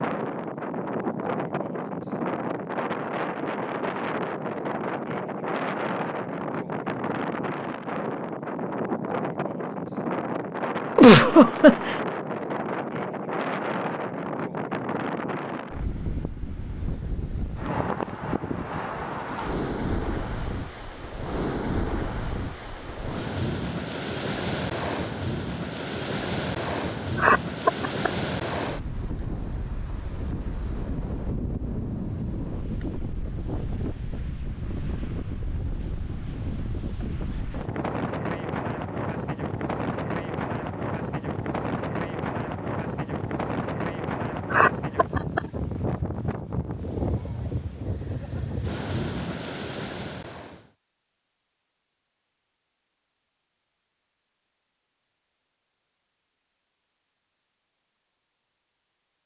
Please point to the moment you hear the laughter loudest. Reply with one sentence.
The volume of the laughter peaks at 11 seconds.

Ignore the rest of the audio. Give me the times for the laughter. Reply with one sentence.
You can hear the laughter from 10.9 to 11.9 s, from 27.1 to 28.1 s and from 44.5 to 45.4 s.